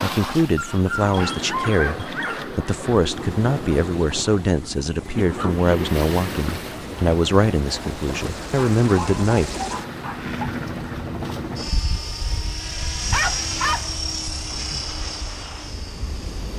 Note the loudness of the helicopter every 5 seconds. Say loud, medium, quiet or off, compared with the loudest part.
medium, medium, loud, medium.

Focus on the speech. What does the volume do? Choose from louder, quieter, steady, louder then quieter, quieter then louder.
steady.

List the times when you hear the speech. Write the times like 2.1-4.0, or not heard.
0.0-9.7.